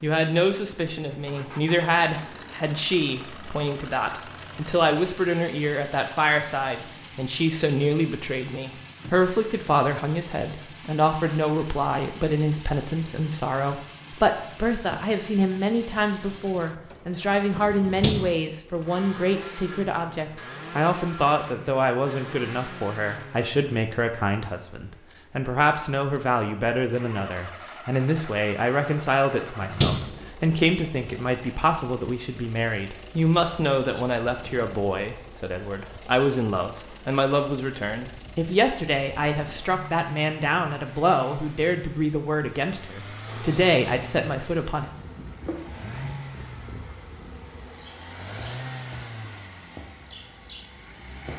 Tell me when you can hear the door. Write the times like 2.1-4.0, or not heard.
17.6-18.3, 29.4-30.6.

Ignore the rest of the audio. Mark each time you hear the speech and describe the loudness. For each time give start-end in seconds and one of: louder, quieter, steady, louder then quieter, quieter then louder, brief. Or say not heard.
0.0-44.9 steady.